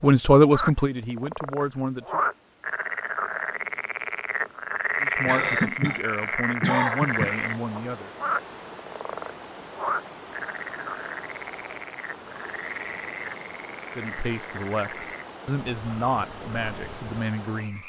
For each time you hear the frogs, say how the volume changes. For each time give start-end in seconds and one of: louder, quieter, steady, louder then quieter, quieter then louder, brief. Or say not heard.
0.0-17.8 quieter.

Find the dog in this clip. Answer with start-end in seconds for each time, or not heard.
not heard.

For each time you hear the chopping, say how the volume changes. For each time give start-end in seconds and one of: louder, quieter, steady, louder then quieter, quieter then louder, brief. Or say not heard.
not heard.